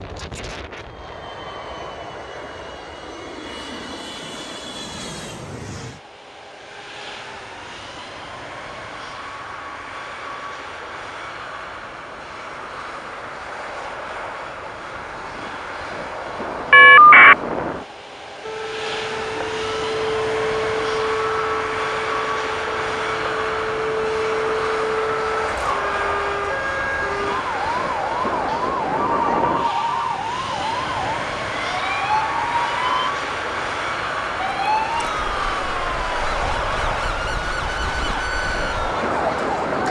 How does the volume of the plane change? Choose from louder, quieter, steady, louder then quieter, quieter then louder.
louder.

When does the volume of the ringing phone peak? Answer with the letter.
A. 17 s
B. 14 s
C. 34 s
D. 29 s
A.